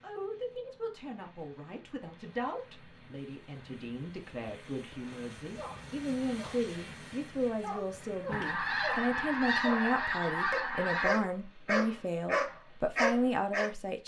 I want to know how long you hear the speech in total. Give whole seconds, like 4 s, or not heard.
14 s.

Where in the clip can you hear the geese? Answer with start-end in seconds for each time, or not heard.
8.3-11.1.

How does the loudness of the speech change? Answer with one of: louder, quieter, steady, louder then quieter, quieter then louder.
louder.